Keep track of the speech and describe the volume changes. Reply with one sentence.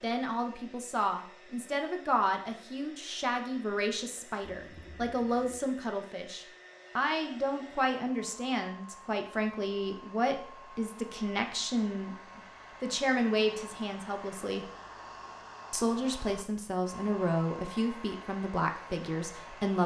The volume of the speech stays about the same.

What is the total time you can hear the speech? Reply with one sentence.
The speech can be heard for 19 seconds in total.